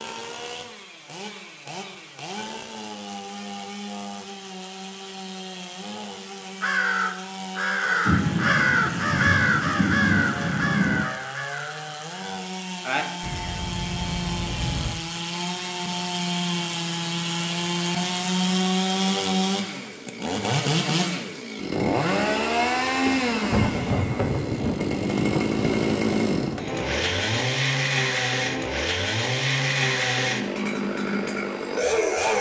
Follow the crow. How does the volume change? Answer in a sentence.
The loudness of the crow goes down.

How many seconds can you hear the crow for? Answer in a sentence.
The crow can be heard for 8 seconds in total.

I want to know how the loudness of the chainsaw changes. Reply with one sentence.
The volume of the chainsaw goes up.